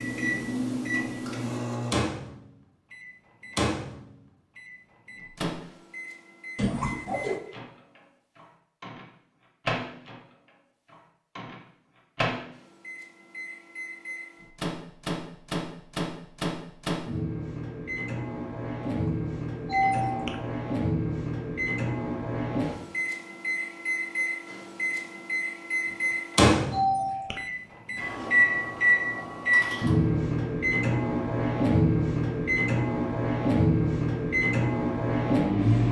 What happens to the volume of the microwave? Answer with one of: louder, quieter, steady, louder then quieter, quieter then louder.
louder.